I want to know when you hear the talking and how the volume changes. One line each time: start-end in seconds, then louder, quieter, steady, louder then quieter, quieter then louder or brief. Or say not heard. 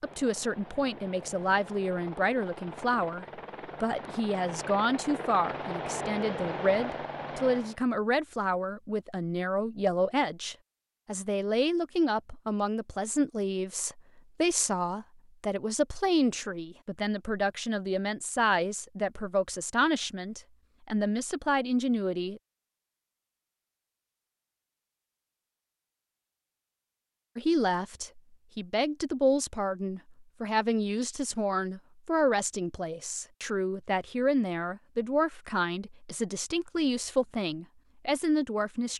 0.0-22.4 steady
27.4-38.9 steady.